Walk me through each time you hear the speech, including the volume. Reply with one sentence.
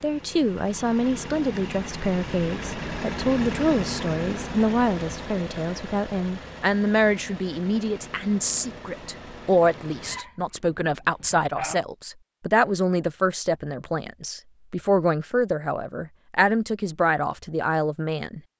You can hear the speech from 0.0 to 18.4 s, at a steady volume.